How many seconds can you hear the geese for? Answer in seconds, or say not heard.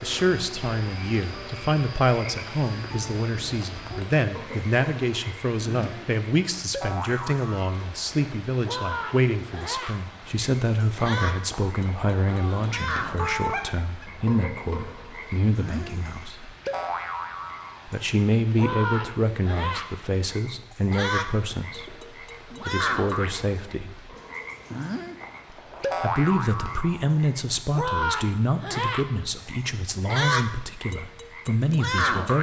2 s.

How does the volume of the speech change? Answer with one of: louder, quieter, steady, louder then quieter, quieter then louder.
steady.